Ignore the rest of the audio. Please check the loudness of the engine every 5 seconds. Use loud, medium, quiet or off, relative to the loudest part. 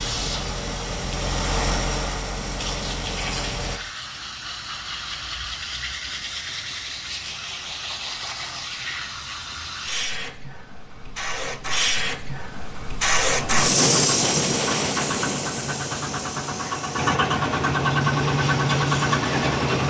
medium, off, medium, loud.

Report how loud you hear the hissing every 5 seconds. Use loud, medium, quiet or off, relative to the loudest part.
medium, medium, loud, medium.